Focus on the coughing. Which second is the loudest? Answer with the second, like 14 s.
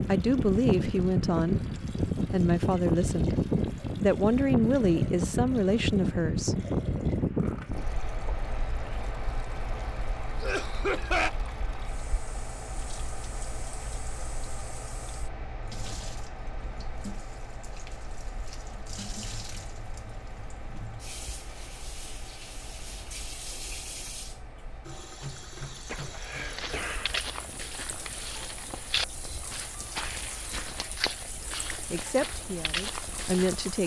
11 s.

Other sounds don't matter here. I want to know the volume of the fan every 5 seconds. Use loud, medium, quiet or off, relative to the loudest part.
loud, loud, quiet, quiet, quiet, quiet, quiet.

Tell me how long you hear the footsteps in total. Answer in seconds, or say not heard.
7 s.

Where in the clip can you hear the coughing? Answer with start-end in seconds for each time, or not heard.
10.4-11.3, 25.6-27.2.